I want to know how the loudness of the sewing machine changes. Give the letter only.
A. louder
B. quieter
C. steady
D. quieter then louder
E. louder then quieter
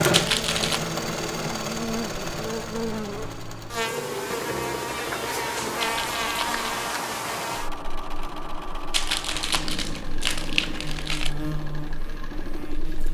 B.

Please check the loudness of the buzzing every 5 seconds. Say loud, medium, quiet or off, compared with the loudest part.
loud, loud, medium.